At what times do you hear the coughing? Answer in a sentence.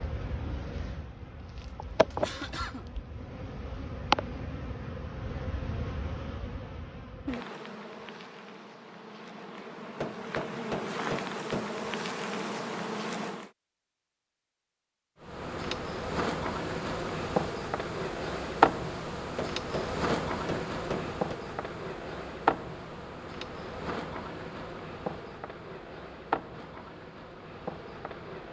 The coughing can be heard from 1.6 to 2.9 s.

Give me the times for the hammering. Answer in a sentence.
The hammering can be heard from 10.0 to 11.8 s and from 19.4 to 21.4 s.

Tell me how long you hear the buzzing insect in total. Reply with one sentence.
You can hear the buzzing insect for 27 seconds altogether.